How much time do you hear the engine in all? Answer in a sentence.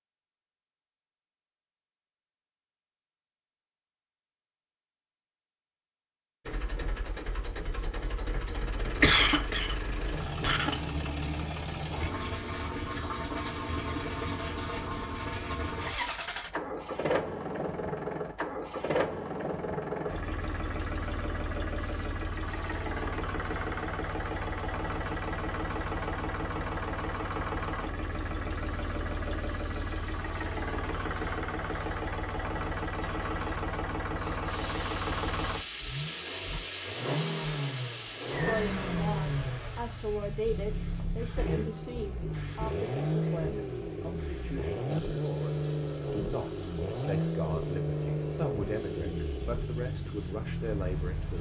The engine can be heard for 45 seconds in total.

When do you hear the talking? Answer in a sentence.
You can hear the talking from 38.4 to 51.3 s.